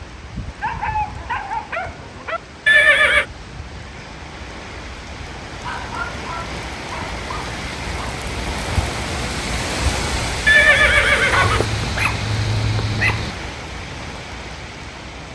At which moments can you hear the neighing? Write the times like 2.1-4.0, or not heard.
2.6-3.2, 10.4-11.7.